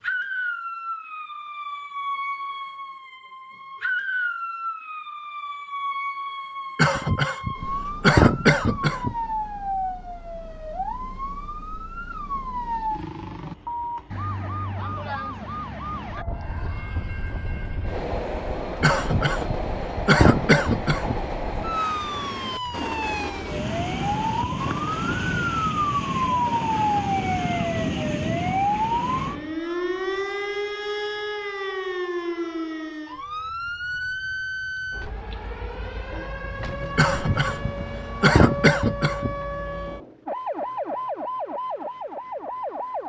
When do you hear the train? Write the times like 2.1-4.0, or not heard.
16.2-29.6.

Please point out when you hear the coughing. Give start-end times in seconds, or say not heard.
6.8-9.2, 18.8-21.2, 37.0-39.4.